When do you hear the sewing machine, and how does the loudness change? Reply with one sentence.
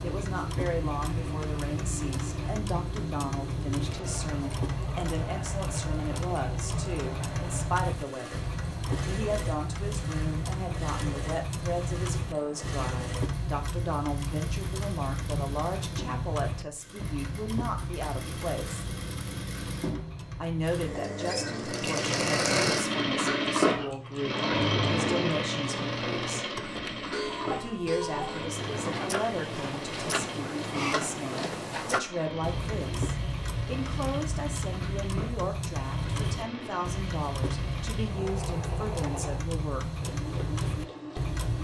The sewing machine can be heard from 0.0 to 41.5 s, getting louder then quieter.